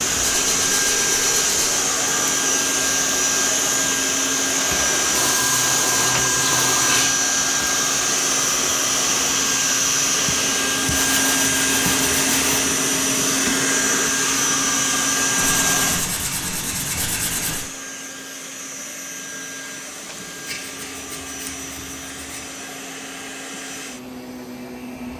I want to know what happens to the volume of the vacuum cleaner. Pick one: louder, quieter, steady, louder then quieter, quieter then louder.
quieter.